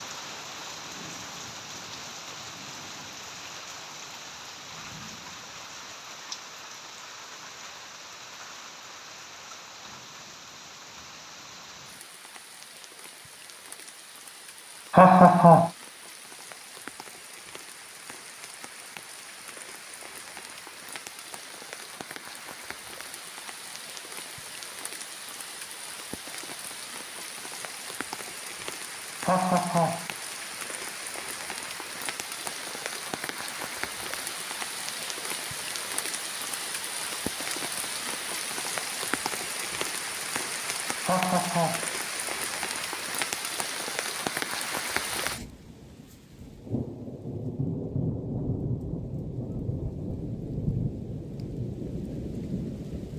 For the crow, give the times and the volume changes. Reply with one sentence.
The crow can't be heard in this clip.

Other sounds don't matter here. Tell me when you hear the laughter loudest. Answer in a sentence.
The loudest moment of the laughter is at 15 seconds.